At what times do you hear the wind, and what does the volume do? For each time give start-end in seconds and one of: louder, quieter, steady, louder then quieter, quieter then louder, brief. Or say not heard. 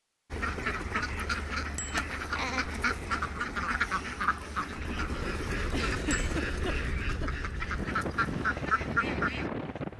4.8-9.9 louder.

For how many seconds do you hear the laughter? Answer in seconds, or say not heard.
2 s.